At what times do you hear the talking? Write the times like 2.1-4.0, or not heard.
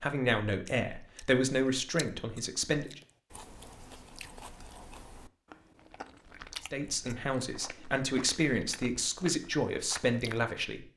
0.0-3.0, 6.6-10.8.